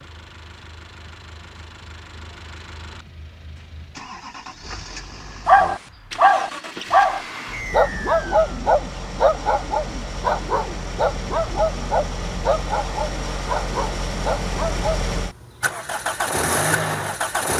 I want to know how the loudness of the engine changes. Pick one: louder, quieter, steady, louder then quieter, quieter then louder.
louder.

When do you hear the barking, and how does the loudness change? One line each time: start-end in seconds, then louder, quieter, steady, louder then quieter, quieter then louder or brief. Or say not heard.
5.5-15.0 quieter.